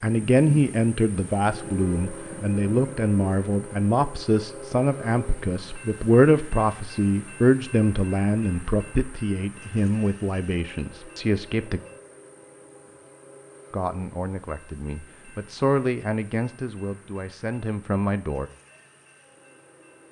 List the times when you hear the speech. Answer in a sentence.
The speech can be heard from 0.0 to 11.8 s and from 13.7 to 18.5 s.